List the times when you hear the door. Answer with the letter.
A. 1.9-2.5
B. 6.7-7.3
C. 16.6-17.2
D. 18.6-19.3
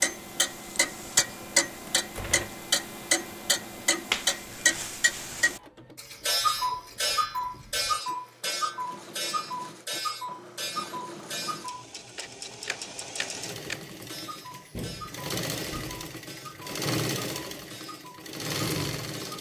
A.